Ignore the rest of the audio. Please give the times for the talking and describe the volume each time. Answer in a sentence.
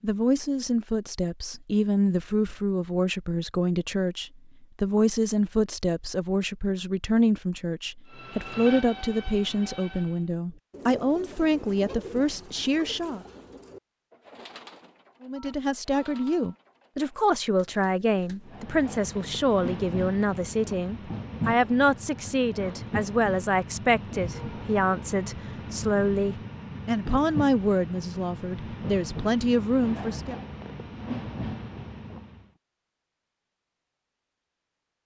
The talking can be heard from 0.0 to 13.2 s, at a steady volume; and from 15.2 to 30.4 s, at a steady volume.